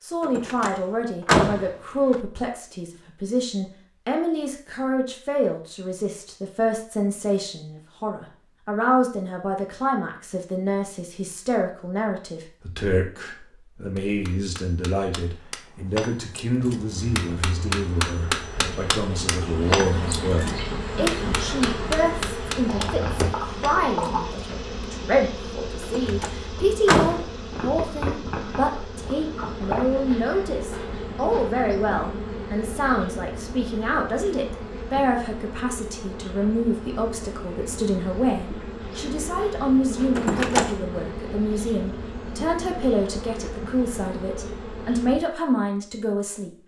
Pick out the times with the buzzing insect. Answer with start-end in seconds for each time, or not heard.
16.6-45.2.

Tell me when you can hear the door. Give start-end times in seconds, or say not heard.
0.2-2.2, 25.8-27.3, 40.1-40.8.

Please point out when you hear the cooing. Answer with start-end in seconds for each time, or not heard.
not heard.